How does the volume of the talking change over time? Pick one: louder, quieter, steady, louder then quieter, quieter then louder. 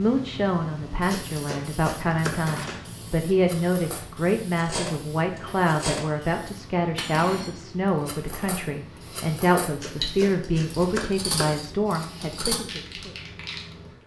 steady.